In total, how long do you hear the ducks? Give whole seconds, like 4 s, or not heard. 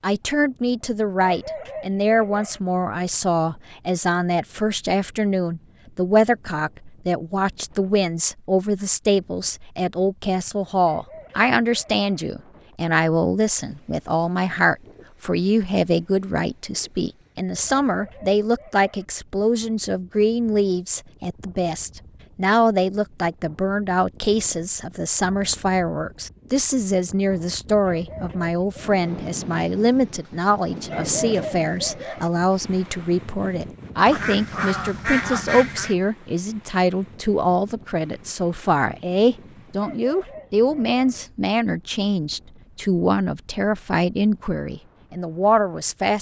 2 s.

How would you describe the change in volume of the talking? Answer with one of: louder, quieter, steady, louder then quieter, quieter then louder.
steady.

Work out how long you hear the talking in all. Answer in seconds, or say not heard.
46 s.